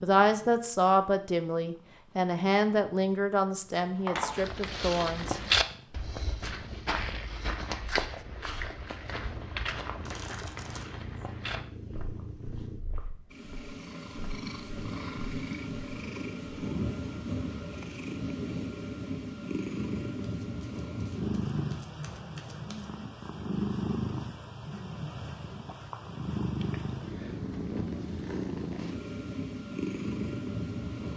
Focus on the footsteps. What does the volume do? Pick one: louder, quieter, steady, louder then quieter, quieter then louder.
quieter.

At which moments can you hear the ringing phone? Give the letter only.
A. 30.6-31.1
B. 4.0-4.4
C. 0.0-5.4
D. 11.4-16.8
B.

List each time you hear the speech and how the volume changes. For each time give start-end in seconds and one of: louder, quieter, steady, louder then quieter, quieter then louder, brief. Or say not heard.
0.0-5.4 quieter.